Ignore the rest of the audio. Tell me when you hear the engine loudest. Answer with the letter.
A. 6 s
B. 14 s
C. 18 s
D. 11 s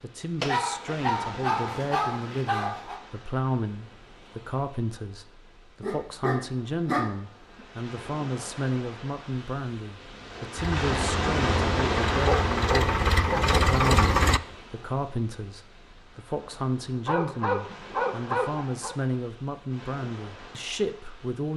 B.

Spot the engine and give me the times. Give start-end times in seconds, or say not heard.
10.6-14.4.